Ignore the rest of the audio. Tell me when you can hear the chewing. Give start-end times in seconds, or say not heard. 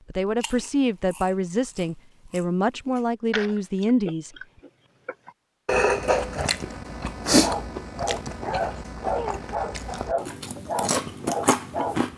0.4-12.1.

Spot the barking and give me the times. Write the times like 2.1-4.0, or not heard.
7.4-12.1.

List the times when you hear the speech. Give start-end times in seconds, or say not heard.
0.1-4.3.